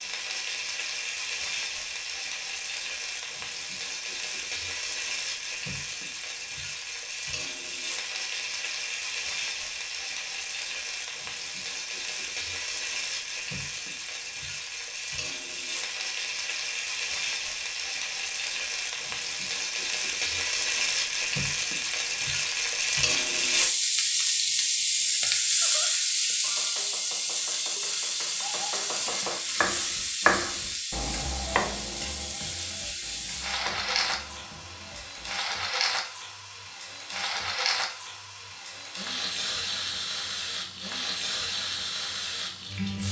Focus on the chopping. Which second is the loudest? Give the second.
30 s.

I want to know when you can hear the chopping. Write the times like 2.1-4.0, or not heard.
25.0-35.4.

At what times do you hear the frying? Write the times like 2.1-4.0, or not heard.
0.0-43.0.